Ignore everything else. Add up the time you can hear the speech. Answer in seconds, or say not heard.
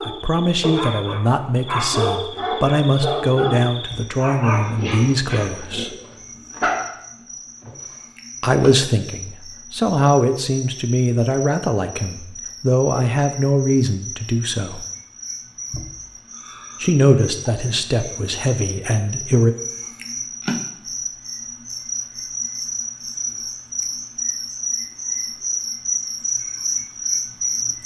15 s.